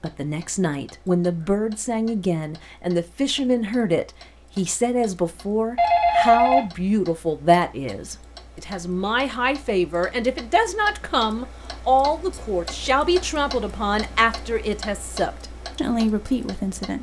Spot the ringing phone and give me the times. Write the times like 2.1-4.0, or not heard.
5.8-6.9.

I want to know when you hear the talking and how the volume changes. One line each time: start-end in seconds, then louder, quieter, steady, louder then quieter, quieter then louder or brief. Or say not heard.
0.0-16.9 steady.